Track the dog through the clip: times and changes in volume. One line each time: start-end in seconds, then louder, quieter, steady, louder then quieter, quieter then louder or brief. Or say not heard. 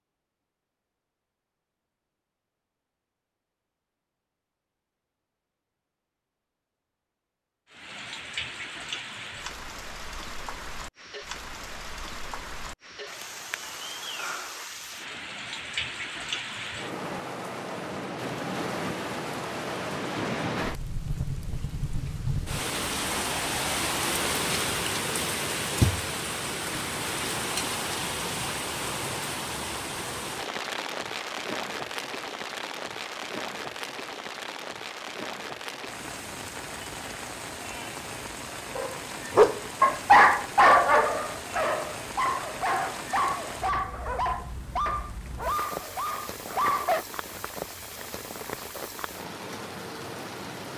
38.8-47.0 quieter.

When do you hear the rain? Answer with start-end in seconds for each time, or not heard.
7.7-50.7.